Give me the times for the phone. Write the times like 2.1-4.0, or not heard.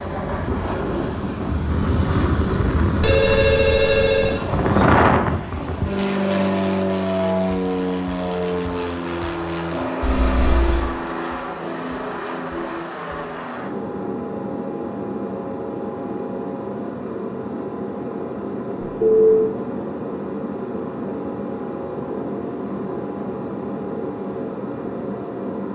3.0-4.4, 10.0-10.9, 18.8-19.4.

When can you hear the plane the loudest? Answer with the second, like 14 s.
5 s.